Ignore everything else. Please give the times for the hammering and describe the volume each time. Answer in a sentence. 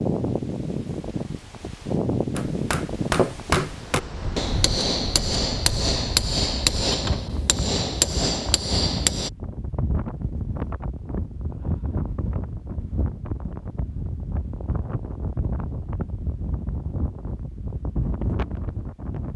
You can hear the hammering from 2.4 to 9.3 s, at a steady volume.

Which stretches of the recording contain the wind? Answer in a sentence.
You can hear the wind from 0.0 to 19.3 s.